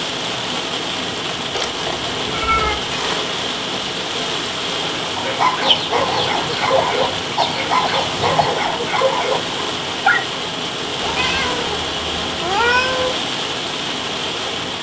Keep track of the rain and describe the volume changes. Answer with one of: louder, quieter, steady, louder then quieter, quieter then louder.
steady.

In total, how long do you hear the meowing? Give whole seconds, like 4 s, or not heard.
4 s.